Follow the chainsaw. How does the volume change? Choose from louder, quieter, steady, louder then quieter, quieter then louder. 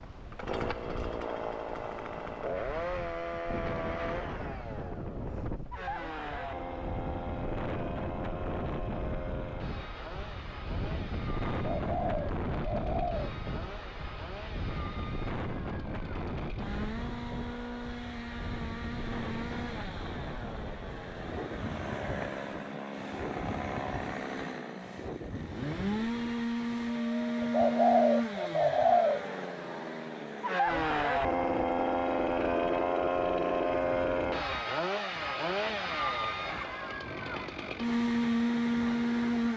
quieter then louder.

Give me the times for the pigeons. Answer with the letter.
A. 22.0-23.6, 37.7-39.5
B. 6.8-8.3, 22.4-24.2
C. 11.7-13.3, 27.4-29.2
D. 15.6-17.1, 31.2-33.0
C.